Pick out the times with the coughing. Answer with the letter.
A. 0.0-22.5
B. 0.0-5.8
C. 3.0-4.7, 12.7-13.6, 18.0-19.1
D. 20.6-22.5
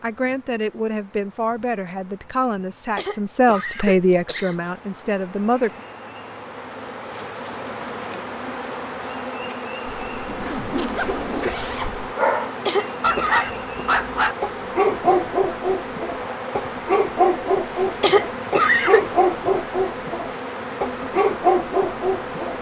C.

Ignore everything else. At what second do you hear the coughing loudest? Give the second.
19 s.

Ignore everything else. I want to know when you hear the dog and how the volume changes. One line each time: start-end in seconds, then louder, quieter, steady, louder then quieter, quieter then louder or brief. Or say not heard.
12.2-22.5 steady.